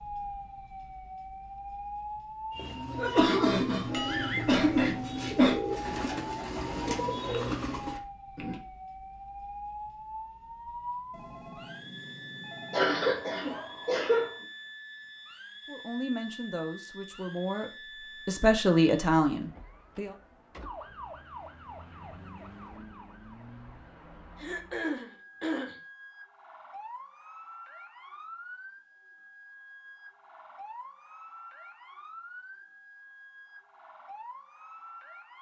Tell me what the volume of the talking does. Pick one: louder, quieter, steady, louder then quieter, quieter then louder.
quieter then louder.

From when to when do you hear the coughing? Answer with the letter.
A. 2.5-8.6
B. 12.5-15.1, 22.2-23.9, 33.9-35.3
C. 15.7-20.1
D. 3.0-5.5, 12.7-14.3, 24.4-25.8
D.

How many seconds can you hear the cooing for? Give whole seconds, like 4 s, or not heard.
6 s.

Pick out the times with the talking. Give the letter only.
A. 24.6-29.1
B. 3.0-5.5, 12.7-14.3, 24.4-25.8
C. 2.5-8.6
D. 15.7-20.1
D.